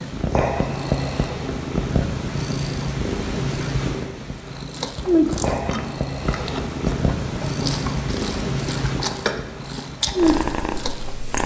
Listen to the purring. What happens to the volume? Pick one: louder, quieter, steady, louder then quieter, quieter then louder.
steady.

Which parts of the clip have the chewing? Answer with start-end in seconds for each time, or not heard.
4.3-11.4.